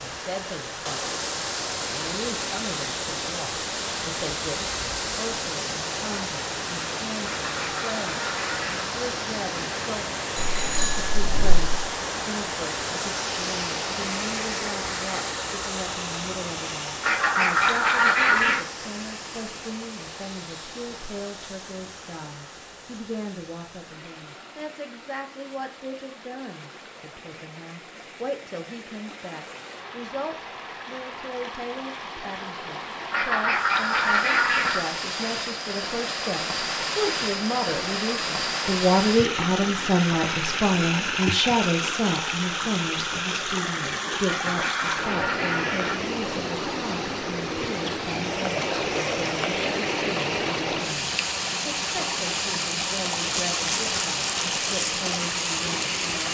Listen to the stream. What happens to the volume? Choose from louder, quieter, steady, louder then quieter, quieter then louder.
quieter then louder.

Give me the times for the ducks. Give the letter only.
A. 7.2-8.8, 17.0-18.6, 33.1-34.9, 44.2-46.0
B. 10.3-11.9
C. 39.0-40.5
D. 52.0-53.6
A.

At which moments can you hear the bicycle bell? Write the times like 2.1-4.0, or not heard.
10.3-11.9.